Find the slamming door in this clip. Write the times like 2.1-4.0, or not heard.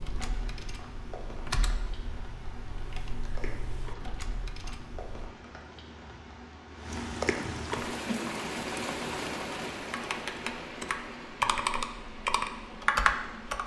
not heard.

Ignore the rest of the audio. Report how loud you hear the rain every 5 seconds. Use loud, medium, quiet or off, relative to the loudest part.
medium, loud, medium.